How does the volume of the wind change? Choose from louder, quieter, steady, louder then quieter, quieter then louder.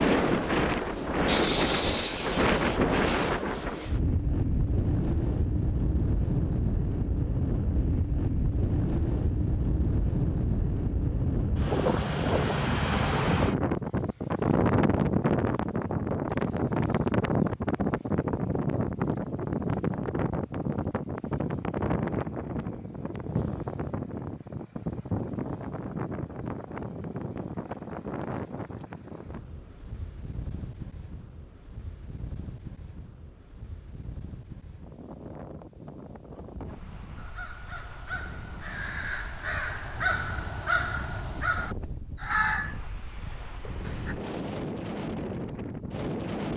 quieter.